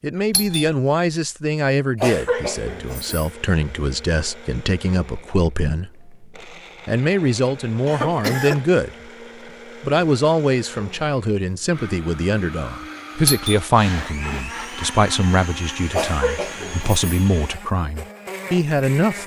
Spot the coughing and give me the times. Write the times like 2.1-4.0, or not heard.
2.0-3.3, 7.8-8.7, 15.9-17.1.